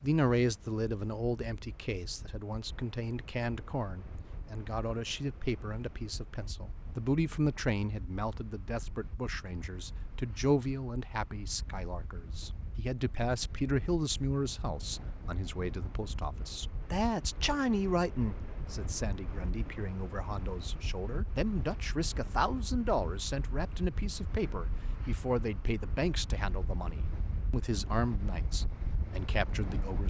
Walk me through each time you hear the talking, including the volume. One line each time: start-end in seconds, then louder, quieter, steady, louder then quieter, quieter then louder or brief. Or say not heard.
0.0-30.0 steady.